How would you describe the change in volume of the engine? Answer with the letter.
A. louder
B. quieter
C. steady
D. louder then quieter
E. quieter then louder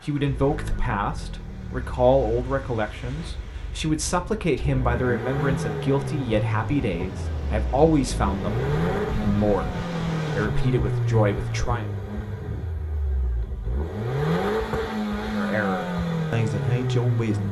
A.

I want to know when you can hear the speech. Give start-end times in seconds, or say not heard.
0.0-11.8, 15.3-17.4.